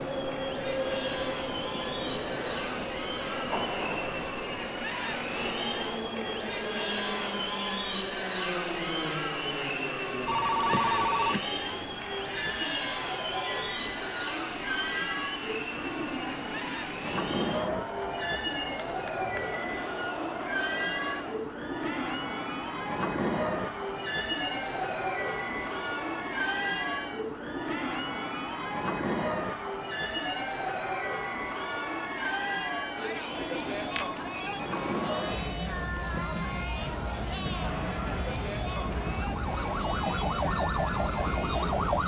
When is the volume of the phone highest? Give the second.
11 s.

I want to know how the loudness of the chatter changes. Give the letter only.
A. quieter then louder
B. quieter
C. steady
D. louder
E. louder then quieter
C.